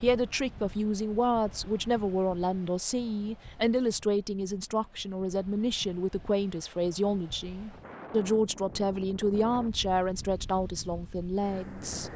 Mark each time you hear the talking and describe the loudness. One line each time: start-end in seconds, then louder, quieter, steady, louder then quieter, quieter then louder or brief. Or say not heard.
0.0-12.1 steady.